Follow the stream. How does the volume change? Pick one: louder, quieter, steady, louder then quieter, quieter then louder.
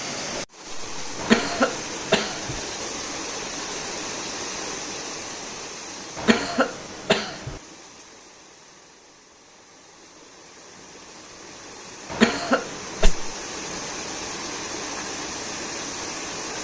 quieter then louder.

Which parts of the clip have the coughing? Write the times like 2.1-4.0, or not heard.
1.1-2.6, 6.2-7.6, 12.1-13.1.